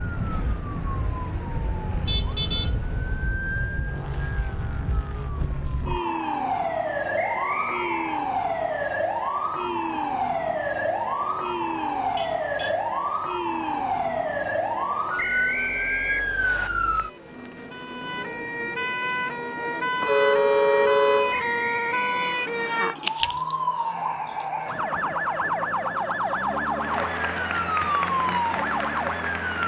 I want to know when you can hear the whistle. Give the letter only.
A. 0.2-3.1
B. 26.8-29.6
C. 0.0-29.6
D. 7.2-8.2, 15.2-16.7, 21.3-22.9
D.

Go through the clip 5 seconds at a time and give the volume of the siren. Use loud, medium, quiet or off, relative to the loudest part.
medium, loud, loud, loud, loud, loud.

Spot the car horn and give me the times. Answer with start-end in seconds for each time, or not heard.
2.0-2.8, 12.2-12.8, 20.0-21.4.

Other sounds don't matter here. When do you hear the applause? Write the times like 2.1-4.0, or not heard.
26.8-29.6.